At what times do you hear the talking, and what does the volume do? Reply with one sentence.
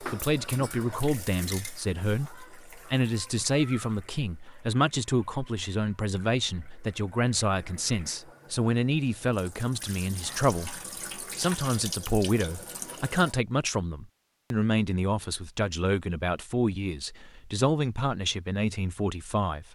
You can hear the talking from 0.0 to 19.6 s, at a steady volume.